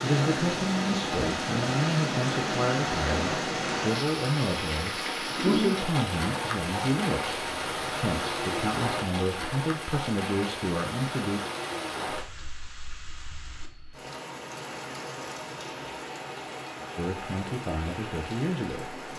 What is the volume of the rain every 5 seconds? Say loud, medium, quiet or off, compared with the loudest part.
loud, loud, medium, medium.